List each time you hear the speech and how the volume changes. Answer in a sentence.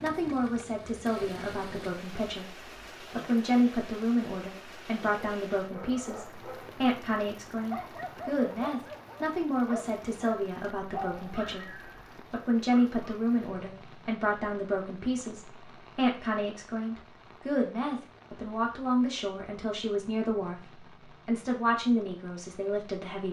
The speech can be heard from 0.0 to 23.2 s, at a steady volume.